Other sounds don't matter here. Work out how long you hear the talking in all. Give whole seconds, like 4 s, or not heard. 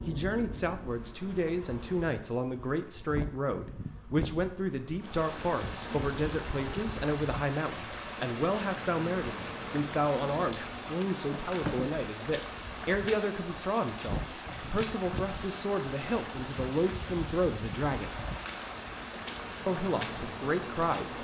20 s.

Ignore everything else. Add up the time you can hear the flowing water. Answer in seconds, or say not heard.
16 s.